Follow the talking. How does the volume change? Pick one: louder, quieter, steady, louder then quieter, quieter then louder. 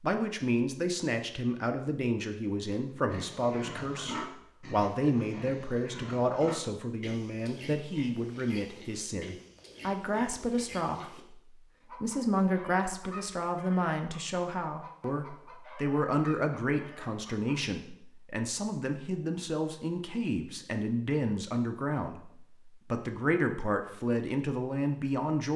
steady.